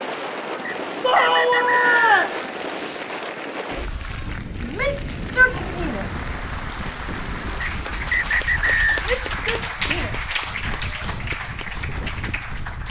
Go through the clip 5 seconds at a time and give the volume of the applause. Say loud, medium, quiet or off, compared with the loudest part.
medium, loud, loud.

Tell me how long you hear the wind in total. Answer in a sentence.
You can hear the wind for 13 seconds altogether.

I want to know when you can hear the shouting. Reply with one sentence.
The shouting can be heard from 1.0 to 2.4 s, from 4.6 to 6.2 s and from 9.1 to 10.2 s.